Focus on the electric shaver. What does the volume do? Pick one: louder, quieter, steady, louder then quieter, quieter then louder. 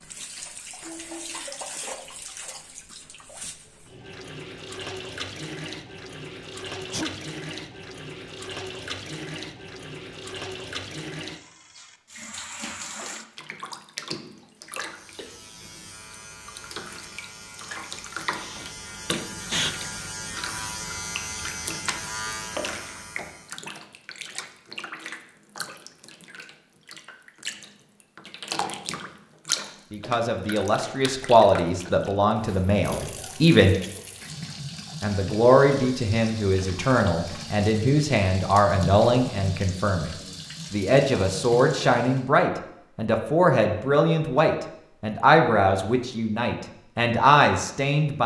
louder.